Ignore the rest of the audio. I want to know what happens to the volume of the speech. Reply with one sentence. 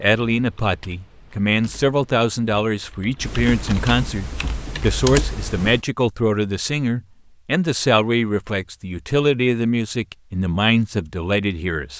The loudness of the speech stays about the same.